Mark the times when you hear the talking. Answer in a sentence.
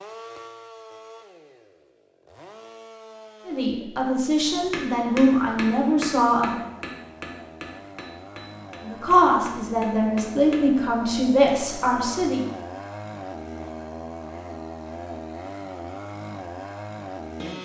The talking can be heard from 3.5 to 6.7 s and from 8.8 to 12.4 s.